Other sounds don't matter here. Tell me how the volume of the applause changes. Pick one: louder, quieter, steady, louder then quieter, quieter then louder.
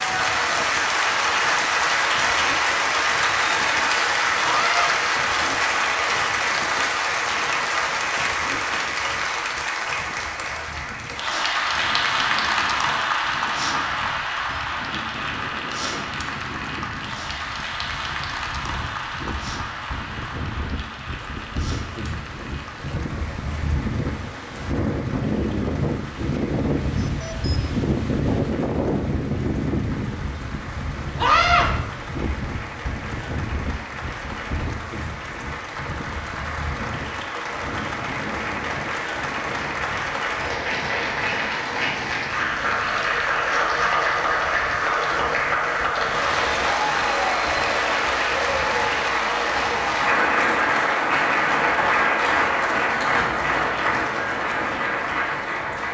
quieter then louder.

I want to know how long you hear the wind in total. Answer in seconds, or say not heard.
56 s.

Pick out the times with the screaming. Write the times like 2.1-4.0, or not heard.
4.4-4.9, 31.1-31.6.